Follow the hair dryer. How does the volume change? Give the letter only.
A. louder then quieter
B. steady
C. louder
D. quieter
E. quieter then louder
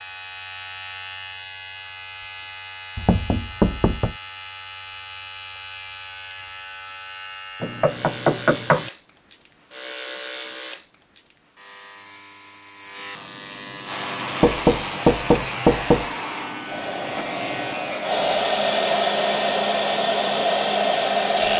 C.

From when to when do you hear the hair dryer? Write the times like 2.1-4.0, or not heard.
13.8-21.5.